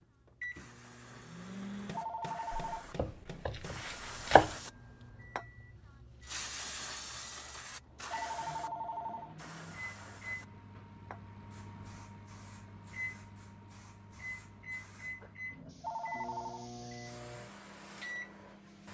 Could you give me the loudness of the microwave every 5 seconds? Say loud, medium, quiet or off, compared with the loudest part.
loud, medium, loud, loud.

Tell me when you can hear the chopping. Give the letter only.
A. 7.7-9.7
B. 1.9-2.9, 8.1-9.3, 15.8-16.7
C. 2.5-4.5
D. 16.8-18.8
C.